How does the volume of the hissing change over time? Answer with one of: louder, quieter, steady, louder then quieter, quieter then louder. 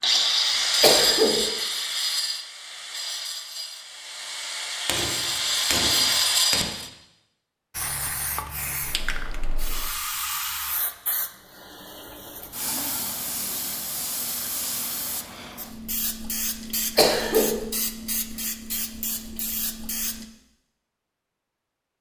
steady.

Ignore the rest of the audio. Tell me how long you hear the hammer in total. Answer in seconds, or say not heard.
2 s.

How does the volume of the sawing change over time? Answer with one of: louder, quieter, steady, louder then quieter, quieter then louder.
quieter then louder.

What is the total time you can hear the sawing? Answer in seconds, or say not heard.
7 s.